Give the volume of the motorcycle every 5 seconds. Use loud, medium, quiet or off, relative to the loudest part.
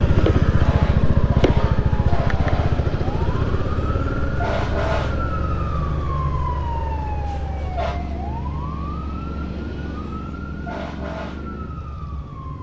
loud, medium, quiet.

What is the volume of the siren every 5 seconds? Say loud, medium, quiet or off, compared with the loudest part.
loud, loud, medium.